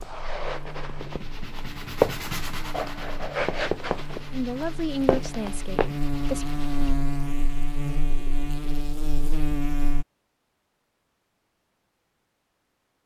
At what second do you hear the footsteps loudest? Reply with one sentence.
The loudest moment of the footsteps is at 2 seconds.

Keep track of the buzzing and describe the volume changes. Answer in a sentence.
The volume of the buzzing goes up.